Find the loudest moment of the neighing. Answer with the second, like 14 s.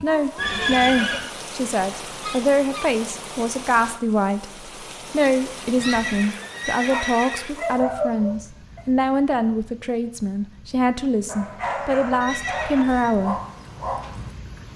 1 s.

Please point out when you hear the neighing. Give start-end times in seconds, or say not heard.
0.3-1.2, 5.8-7.5, 12.2-13.2.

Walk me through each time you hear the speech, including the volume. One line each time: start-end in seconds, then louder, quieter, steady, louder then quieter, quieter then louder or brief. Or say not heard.
0.0-13.4 steady.